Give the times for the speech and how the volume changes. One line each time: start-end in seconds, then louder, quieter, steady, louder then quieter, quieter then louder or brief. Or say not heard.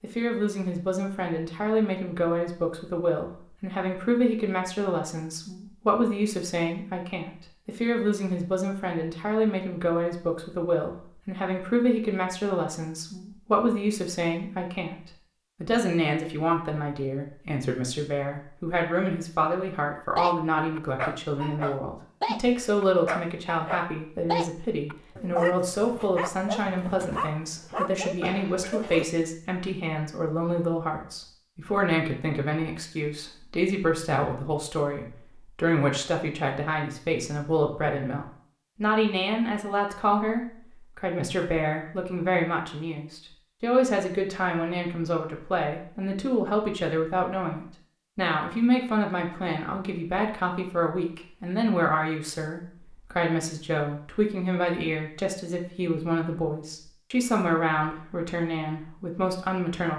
0.0-59.9 steady.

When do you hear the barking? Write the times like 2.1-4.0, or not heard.
20.1-29.1.